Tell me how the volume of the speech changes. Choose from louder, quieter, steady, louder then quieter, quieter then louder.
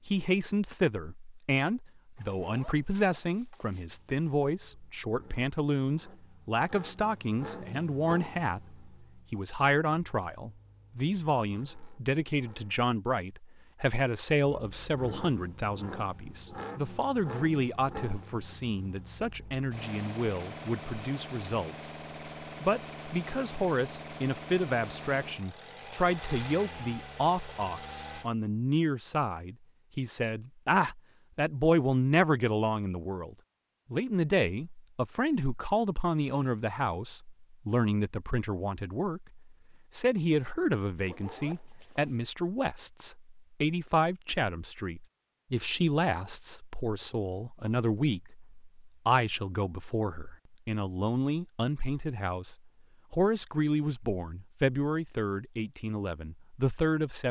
steady.